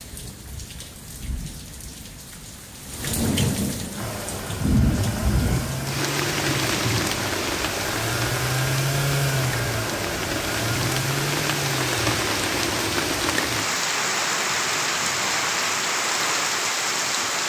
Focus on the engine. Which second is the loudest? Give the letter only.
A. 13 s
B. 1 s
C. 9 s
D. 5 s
C.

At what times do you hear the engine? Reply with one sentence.
The engine can be heard from 3.9 to 13.3 s.